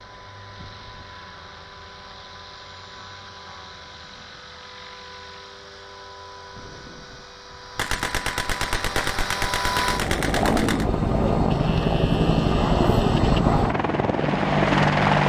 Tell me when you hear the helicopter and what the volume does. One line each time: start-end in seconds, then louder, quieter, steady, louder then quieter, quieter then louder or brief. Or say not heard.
0.0-15.2 louder.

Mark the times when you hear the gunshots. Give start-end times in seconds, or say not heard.
7.8-10.8.